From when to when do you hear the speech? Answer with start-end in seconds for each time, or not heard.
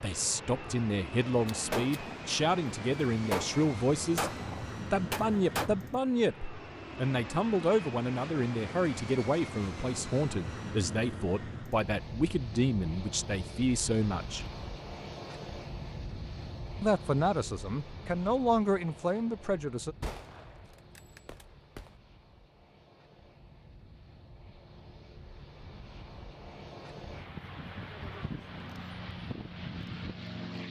0.0-4.3, 4.9-14.4, 16.8-19.9.